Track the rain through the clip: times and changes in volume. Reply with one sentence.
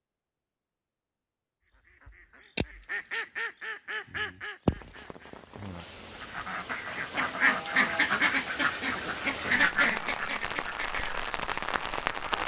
The rain can be heard from 4.8 to 12.4 s, getting louder.